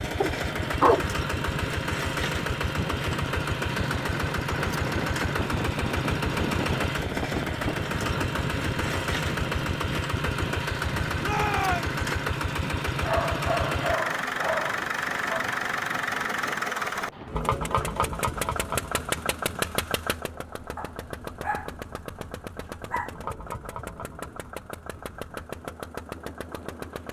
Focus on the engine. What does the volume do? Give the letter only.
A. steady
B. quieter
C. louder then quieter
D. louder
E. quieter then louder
B.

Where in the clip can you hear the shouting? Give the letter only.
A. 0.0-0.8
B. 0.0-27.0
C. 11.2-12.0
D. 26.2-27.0
C.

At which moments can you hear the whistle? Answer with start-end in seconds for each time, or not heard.
not heard.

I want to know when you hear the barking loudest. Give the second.
1 s.